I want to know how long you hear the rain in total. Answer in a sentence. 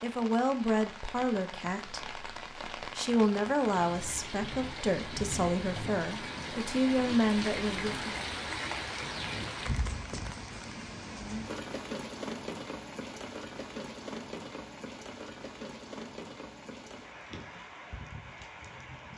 You can hear the rain for 19 seconds altogether.